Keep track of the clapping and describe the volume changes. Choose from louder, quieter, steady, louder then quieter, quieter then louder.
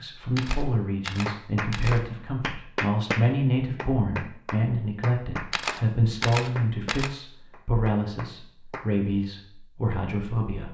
quieter.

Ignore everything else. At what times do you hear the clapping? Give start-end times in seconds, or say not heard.
1.2-8.9.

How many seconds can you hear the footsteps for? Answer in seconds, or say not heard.
not heard.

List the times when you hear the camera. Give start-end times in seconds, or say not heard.
0.3-2.0, 5.5-7.2.